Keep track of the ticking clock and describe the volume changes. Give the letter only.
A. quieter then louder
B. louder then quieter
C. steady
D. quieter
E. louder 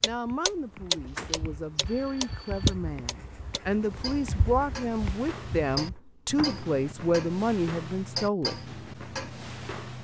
D.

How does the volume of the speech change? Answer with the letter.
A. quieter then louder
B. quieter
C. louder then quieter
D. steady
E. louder
E.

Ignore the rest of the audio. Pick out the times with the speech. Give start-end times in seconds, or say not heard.
0.0-8.6.